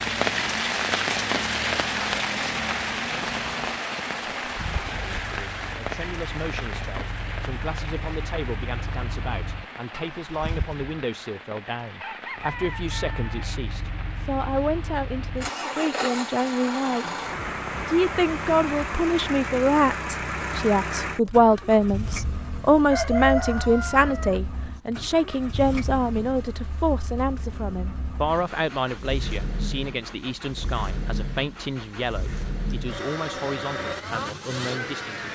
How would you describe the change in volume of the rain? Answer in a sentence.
The loudness of the rain goes down.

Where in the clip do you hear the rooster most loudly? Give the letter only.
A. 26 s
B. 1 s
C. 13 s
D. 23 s
D.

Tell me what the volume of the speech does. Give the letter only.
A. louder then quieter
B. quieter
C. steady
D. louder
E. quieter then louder
A.